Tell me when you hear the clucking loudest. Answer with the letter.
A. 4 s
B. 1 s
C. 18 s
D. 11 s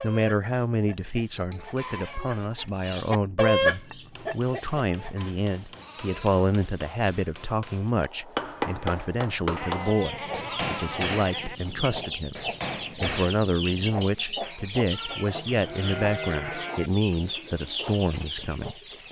A.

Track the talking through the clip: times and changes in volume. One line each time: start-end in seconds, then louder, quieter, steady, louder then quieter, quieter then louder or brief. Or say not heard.
0.0-18.8 steady.